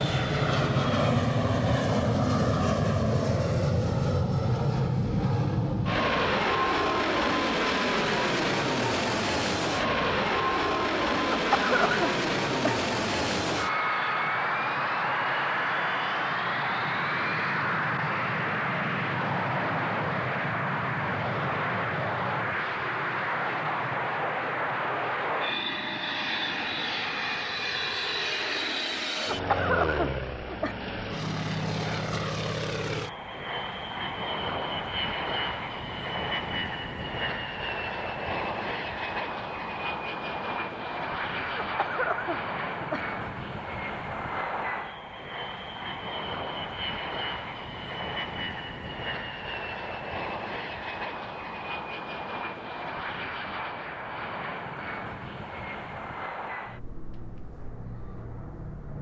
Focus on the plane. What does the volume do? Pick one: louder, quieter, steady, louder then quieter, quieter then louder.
quieter.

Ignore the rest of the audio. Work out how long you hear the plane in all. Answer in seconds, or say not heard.
59 s.